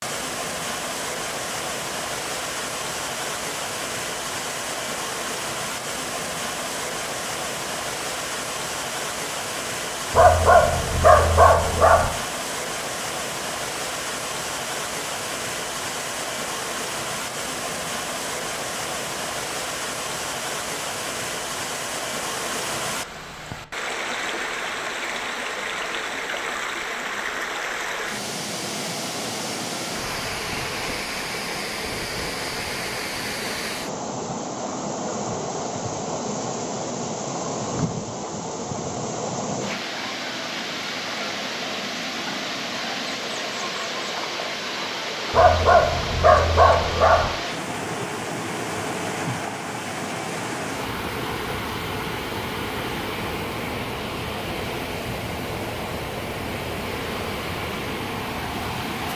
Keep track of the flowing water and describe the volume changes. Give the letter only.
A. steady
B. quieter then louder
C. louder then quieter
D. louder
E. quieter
A.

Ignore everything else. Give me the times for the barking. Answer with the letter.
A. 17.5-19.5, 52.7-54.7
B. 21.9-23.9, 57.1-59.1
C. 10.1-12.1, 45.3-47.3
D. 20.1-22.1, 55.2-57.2
C.